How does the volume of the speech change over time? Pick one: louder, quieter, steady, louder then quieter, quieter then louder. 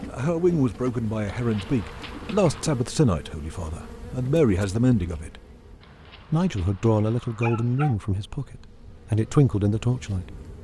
steady.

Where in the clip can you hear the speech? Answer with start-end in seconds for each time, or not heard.
0.1-5.3, 6.3-10.3.